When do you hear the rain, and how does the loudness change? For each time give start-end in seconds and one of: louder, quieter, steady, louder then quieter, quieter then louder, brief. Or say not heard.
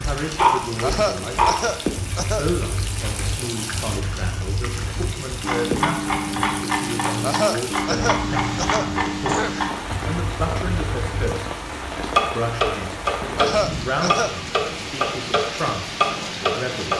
0.0-16.9 steady.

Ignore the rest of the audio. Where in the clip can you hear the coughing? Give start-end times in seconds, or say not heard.
0.8-2.5, 7.2-9.6, 13.3-14.3.